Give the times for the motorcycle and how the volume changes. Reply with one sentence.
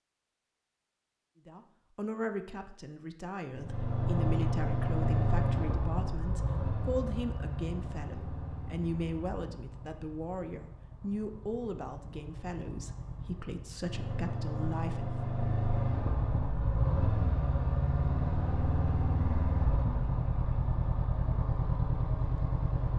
You can hear the motorcycle from 3.5 to 22.9 s, getting quieter then louder.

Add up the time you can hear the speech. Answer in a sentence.
The speech can be heard for 14 seconds in total.